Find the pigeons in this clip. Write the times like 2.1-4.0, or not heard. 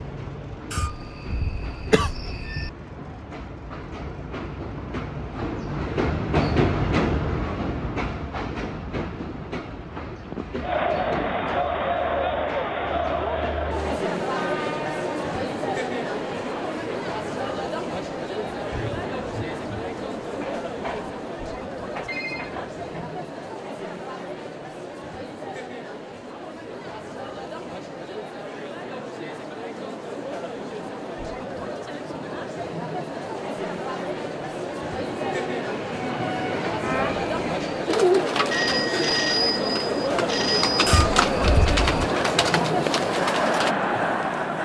37.9-43.8.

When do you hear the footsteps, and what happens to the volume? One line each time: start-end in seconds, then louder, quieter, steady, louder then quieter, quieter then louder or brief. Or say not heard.
not heard.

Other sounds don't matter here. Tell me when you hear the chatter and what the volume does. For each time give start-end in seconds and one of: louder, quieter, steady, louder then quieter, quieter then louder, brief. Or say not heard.
10.6-44.5 quieter then louder.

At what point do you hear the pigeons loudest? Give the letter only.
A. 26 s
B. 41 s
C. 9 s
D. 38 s
D.